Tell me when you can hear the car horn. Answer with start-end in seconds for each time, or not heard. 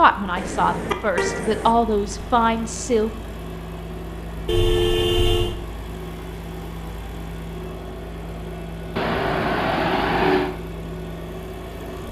0.3-1.8, 4.5-5.5, 8.9-10.5.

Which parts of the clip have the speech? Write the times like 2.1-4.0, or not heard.
0.0-3.1.